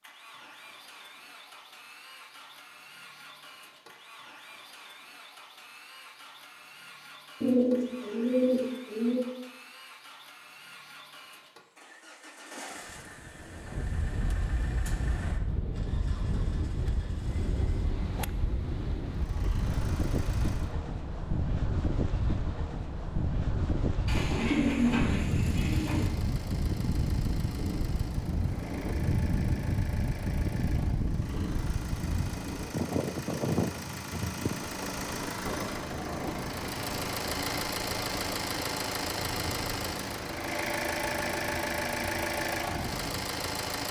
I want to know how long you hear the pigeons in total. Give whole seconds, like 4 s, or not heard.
4 s.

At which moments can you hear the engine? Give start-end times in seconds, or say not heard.
0.0-20.8, 25.2-43.8.